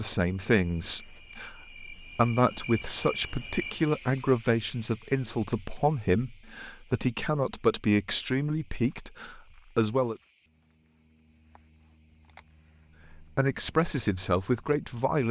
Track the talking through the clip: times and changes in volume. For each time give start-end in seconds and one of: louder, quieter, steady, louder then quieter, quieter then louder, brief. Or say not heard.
0.0-10.2 steady
13.1-15.2 brief.